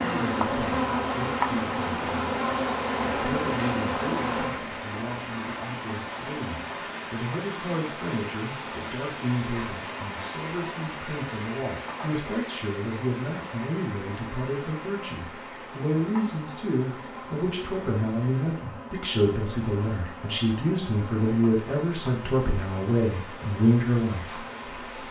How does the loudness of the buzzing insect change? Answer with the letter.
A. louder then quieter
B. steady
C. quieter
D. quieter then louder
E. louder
C.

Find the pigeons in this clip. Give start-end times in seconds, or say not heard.
not heard.